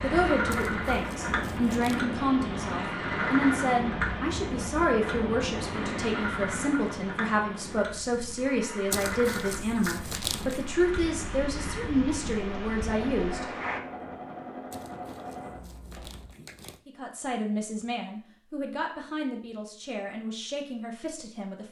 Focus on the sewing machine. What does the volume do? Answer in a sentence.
The loudness of the sewing machine goes down.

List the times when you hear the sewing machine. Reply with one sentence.
You can hear the sewing machine from 0.0 to 16.3 s.